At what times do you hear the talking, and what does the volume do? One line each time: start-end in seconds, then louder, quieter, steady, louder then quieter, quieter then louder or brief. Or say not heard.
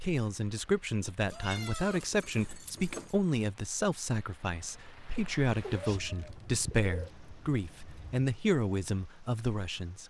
0.0-10.0 steady.